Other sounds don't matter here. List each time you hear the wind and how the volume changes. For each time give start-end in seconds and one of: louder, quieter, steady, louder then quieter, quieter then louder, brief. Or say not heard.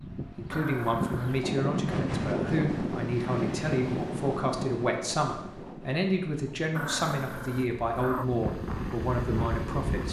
0.0-10.0 quieter then louder.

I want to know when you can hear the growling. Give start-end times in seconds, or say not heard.
0.5-1.4, 6.8-8.2.